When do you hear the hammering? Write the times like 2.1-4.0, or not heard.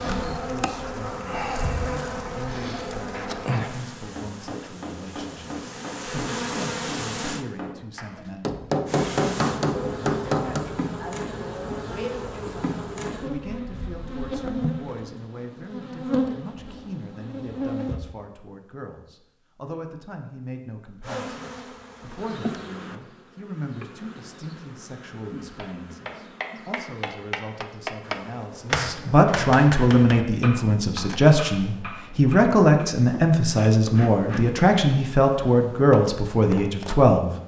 3.1-10.7, 25.6-32.9.